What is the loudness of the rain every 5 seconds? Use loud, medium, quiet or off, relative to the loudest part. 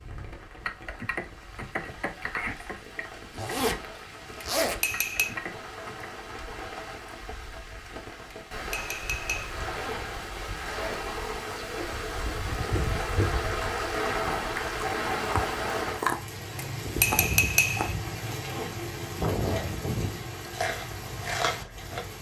quiet, medium, loud, loud, medium.